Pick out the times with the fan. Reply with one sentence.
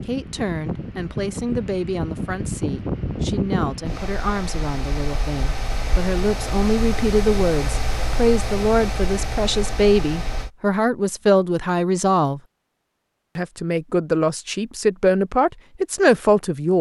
You can hear the fan from 0.0 to 10.5 s.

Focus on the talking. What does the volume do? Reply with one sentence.
The volume of the talking goes up.